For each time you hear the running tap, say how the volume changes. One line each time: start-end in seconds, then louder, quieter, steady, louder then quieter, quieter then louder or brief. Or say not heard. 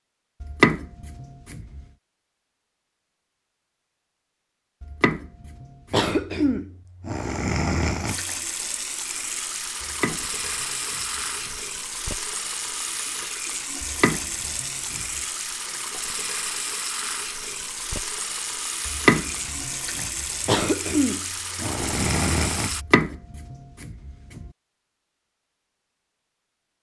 8.1-22.9 steady.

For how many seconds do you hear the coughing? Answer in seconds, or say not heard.
5 s.